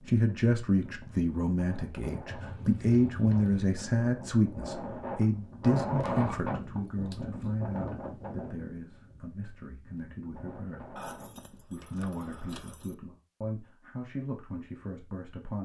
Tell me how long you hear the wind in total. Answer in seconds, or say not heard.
12 s.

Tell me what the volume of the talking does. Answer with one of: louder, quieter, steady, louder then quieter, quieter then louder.
quieter.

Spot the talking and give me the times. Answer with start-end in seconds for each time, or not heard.
0.1-10.9, 11.7-15.6.